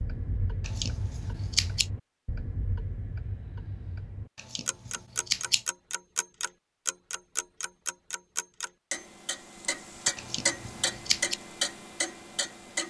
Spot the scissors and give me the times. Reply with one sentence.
You can hear the scissors from 0.7 to 1.9 s, from 4.3 to 5.7 s and from 10.2 to 11.3 s.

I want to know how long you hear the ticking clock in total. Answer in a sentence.
You can hear the ticking clock for 13 seconds altogether.